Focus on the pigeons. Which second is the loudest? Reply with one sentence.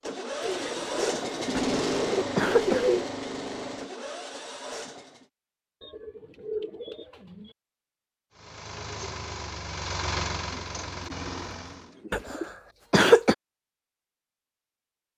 The loudest moment of the pigeons is at 3 seconds.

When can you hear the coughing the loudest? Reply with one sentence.
The volume of the coughing peaks at 13 seconds.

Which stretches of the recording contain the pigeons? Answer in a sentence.
The pigeons can be heard from 0.4 to 3.1 s, from 5.8 to 7.5 s and from 10.5 to 12.5 s.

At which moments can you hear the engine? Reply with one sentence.
You can hear the engine from 0.0 to 5.2 s and from 8.3 to 11.9 s.